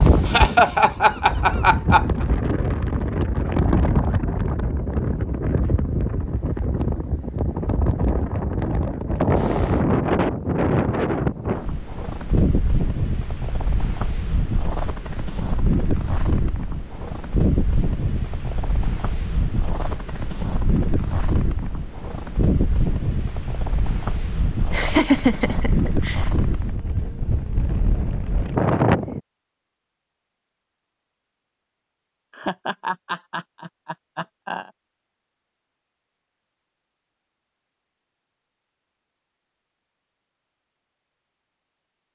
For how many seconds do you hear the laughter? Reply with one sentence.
You can hear the laughter for 6 seconds altogether.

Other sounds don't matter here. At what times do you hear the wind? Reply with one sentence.
You can hear the wind from 0.0 to 29.2 s.